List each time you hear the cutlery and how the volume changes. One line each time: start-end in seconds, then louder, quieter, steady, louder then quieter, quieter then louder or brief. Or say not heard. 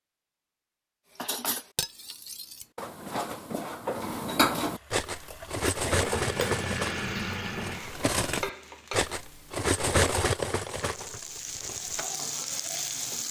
1.1-12.1 louder.